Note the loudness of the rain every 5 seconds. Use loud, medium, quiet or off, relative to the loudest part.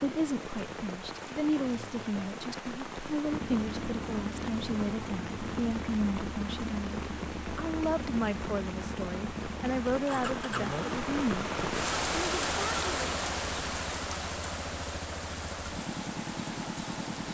medium, medium, loud, medium.